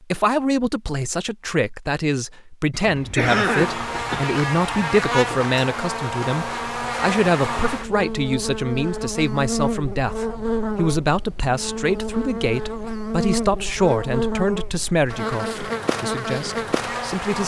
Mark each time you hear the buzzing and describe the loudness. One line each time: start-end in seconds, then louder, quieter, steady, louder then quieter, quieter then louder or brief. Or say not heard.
3.2-17.4 steady.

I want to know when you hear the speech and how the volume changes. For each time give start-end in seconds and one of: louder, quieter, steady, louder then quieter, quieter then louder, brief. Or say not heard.
0.0-17.4 steady.